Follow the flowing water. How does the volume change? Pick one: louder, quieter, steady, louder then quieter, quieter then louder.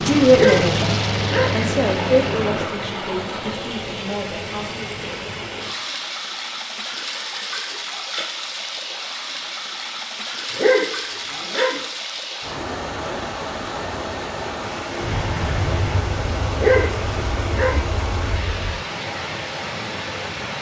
steady.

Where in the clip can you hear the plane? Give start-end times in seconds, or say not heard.
0.0-2.7, 15.0-18.8.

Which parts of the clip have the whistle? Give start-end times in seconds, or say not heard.
not heard.